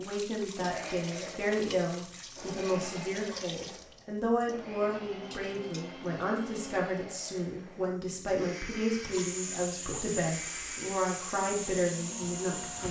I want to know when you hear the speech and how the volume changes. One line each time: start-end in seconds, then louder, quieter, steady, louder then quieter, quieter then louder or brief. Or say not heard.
0.0-12.8 steady.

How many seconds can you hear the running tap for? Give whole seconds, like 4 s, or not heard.
13 s.